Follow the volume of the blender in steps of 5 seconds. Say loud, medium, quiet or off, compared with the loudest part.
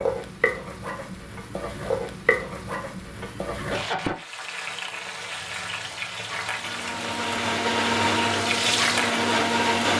off, loud.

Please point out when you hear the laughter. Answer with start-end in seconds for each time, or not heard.
3.2-4.2.